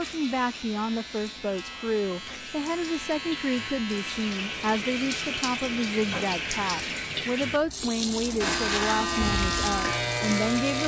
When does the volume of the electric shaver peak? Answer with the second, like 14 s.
9 s.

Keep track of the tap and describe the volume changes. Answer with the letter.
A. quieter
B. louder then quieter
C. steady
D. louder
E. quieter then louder
D.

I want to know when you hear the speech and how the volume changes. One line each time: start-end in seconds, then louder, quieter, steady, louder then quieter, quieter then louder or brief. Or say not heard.
0.0-10.8 steady.